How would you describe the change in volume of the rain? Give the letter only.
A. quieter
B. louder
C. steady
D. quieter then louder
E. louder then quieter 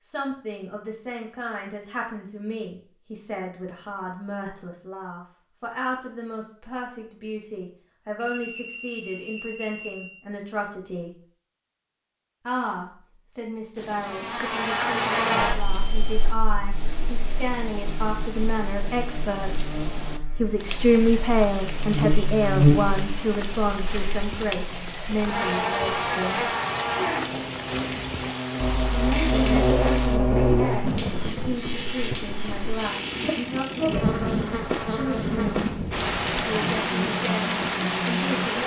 B.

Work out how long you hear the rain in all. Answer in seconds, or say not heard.
25 s.